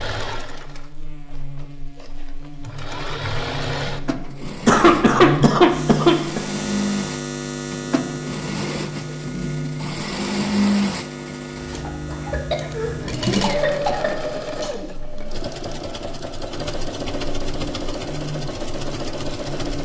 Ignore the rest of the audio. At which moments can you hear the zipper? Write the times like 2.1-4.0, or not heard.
not heard.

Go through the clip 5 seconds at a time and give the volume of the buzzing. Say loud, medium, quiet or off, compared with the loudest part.
medium, loud, medium, medium.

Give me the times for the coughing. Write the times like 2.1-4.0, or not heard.
4.5-6.4, 12.1-14.7.